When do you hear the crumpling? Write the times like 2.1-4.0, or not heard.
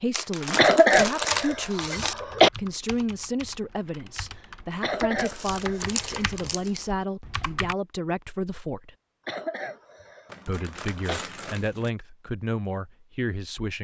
0.1-2.1, 5.2-6.8, 10.3-11.9.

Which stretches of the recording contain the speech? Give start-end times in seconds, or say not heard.
0.0-8.9, 10.4-13.7.